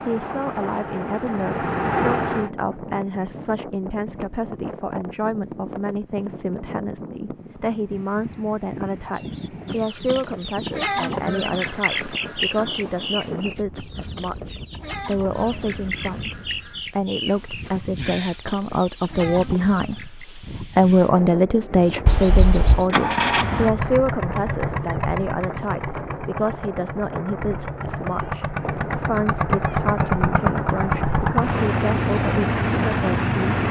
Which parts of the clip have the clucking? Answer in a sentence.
The clucking can be heard from 9.1 to 20.2 s.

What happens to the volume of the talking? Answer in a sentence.
The loudness of the talking goes up, then down.